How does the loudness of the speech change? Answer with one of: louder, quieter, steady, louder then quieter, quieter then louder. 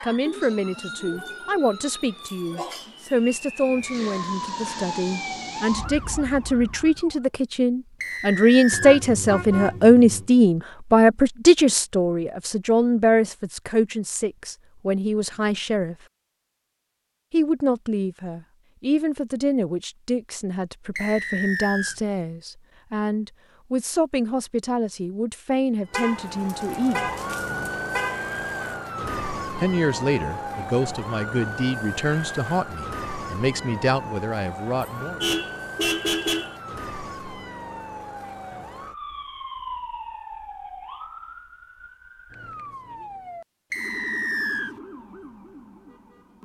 louder then quieter.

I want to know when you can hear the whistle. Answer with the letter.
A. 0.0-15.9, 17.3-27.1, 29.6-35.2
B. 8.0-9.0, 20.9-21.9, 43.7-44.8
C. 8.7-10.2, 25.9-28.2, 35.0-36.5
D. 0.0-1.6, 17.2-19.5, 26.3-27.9
B.